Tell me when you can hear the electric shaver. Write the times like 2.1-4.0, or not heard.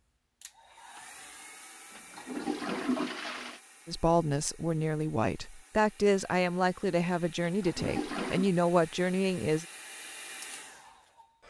not heard.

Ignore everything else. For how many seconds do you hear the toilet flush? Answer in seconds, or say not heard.
3 s.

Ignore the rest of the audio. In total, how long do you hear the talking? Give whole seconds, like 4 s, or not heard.
6 s.